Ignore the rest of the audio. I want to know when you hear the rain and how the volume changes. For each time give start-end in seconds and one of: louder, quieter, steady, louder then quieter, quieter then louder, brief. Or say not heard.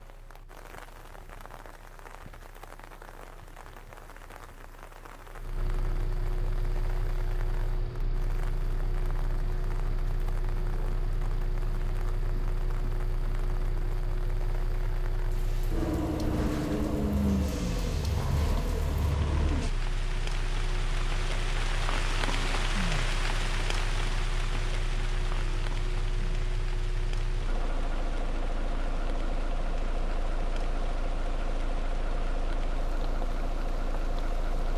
0.0-34.7 louder then quieter.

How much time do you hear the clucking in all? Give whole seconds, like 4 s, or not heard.
not heard.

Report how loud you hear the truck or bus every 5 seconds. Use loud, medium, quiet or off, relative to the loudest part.
quiet, medium, medium, loud, medium, medium, medium.